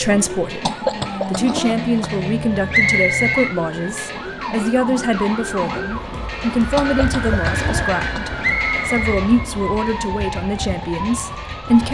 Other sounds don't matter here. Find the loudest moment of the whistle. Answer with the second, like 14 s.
3 s.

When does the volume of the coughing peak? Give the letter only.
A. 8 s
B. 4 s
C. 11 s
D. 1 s
D.